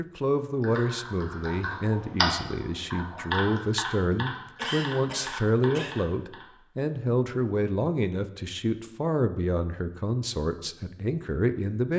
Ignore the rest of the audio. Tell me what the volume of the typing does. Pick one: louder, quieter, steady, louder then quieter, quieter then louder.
louder then quieter.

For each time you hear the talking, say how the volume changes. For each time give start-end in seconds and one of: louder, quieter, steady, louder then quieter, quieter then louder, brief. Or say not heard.
0.0-11.9 steady.